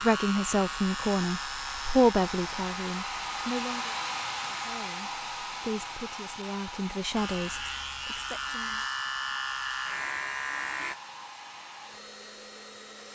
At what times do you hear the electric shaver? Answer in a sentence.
The electric shaver can be heard from 0.0 to 4.8 s and from 7.1 to 10.9 s.